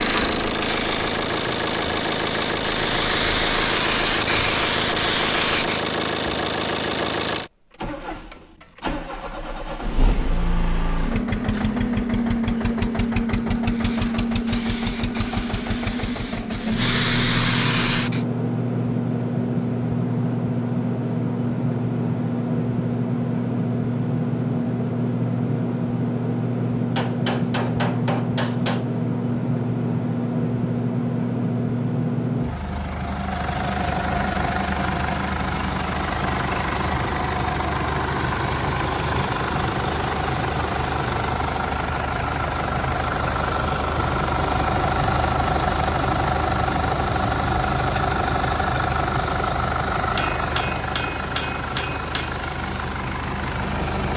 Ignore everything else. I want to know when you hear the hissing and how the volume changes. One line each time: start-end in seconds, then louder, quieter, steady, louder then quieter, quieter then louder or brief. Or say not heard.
0.0-5.8 louder
13.7-18.2 louder.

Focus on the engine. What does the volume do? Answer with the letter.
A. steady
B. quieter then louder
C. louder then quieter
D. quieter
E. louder
A.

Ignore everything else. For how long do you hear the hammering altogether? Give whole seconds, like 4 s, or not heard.
5 s.